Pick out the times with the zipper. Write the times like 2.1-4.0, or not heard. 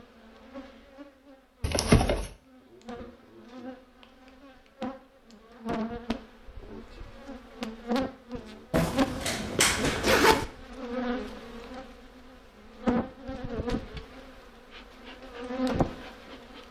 1.6-2.3, 8.7-10.4.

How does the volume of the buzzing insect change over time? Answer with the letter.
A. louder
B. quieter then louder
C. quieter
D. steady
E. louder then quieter
A.